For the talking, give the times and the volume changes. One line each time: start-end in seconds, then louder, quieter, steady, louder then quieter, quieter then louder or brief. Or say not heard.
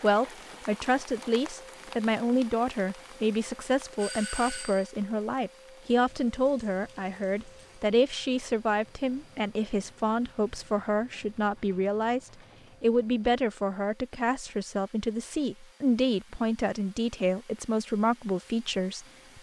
0.0-19.3 steady.